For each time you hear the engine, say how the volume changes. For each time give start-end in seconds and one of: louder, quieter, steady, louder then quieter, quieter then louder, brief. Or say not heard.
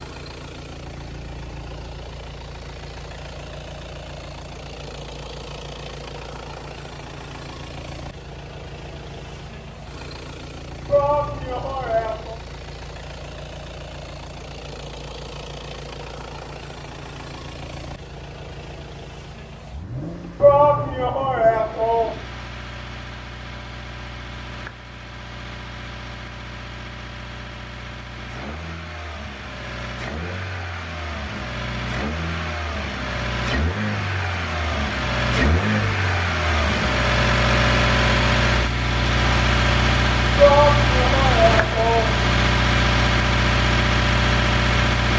0.0-45.1 louder.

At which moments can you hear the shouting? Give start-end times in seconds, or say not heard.
10.8-12.3, 20.4-22.2, 40.4-42.2.